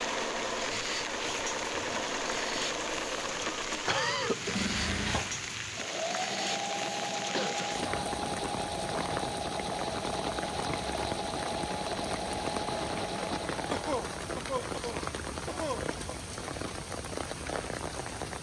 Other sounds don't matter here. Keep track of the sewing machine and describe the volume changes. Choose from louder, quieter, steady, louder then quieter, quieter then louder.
steady.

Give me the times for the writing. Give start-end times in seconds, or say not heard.
not heard.